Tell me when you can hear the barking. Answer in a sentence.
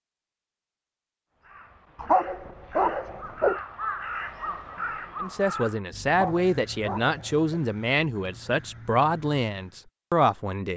You can hear the barking from 1.9 to 3.6 s and from 6.0 to 7.4 s.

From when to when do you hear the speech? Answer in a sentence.
The speech can be heard from 5.2 to 10.7 s.